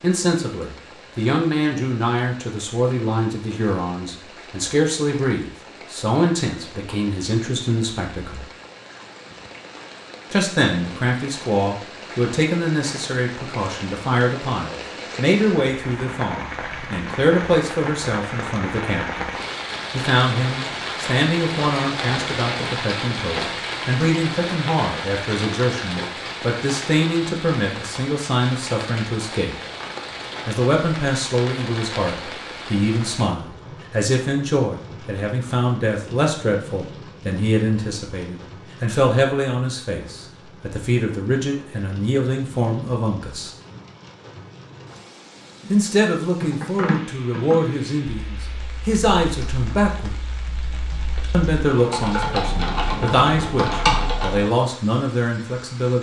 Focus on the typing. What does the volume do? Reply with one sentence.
The volume of the typing goes down, then up.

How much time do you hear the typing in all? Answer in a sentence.
You can hear the typing for 8 seconds altogether.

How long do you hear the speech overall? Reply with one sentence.
The speech can be heard for 49 seconds in total.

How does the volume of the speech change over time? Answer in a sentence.
The volume of the speech stays about the same.